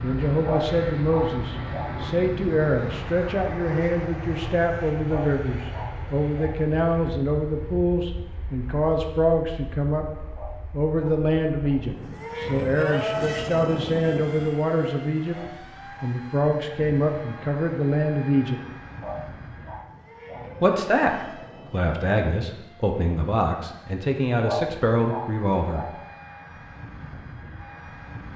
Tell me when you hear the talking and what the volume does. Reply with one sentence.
You can hear the talking from 0.0 to 18.6 s, at a steady volume; and from 20.6 to 26.0 s, at a steady volume.